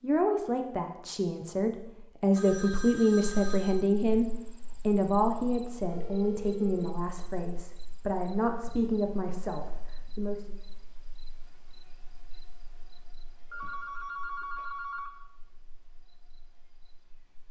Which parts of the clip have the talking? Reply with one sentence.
The talking can be heard from 0.0 to 10.6 s.